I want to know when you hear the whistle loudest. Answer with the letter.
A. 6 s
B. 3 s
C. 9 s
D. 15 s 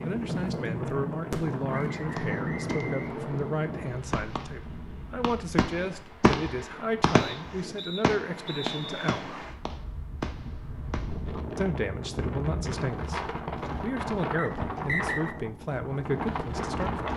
D.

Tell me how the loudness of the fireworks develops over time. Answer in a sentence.
The volume of the fireworks goes up, then down.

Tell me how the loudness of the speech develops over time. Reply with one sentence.
The loudness of the speech stays about the same.